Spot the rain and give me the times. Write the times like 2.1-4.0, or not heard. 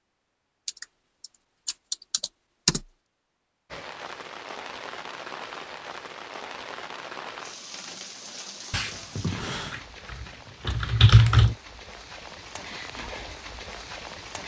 3.7-14.4.